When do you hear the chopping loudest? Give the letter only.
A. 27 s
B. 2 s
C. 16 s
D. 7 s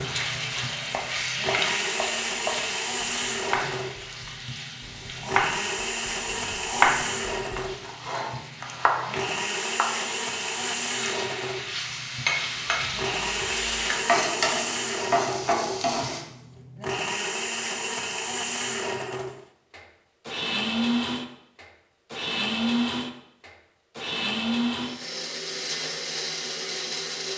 D.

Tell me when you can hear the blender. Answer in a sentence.
You can hear the blender from 0.0 to 27.3 s.